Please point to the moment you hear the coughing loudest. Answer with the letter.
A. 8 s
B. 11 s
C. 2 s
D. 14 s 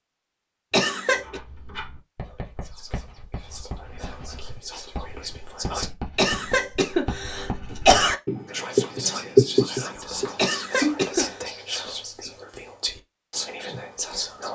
A.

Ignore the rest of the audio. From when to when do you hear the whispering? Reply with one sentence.
The whispering can be heard from 2.2 to 5.9 s and from 8.4 to 14.5 s.